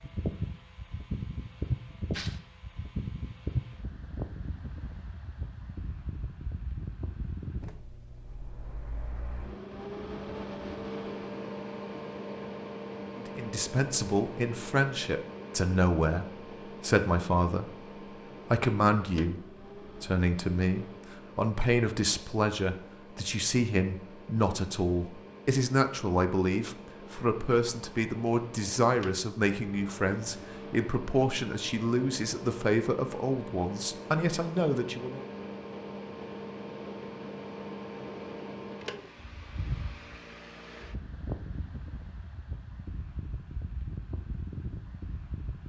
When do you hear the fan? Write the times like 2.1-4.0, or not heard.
0.0-45.6.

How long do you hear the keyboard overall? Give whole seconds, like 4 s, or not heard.
not heard.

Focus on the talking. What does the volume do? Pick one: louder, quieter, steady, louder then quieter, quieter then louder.
steady.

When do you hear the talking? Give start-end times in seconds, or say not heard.
13.2-17.8, 18.5-35.2.